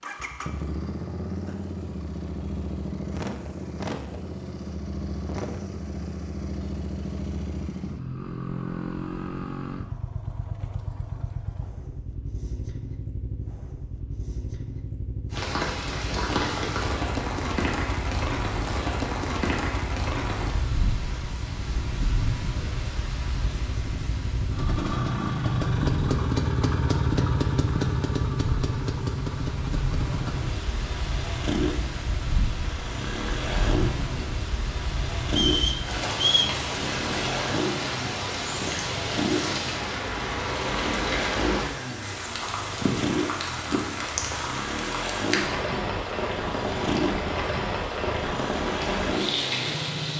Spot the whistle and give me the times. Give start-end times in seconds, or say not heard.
35.2-36.5.